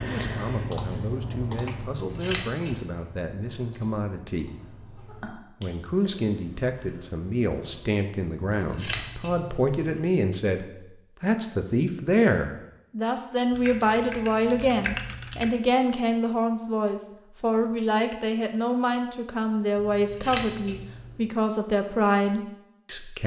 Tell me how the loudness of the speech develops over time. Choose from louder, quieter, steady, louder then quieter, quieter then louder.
louder.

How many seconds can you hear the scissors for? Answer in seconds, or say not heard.
4 s.